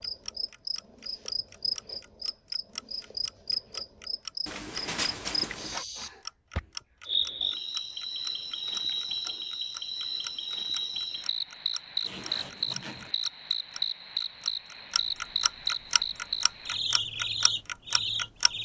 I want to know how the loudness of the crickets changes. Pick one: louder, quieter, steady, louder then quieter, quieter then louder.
steady.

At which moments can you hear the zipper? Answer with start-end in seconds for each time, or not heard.
4.5-5.8, 12.0-13.2.